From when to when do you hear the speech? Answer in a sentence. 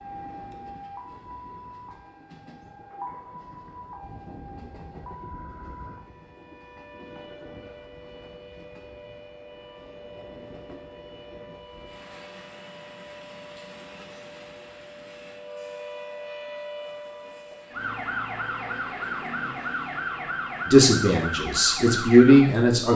The speech can be heard from 20.6 to 22.9 s.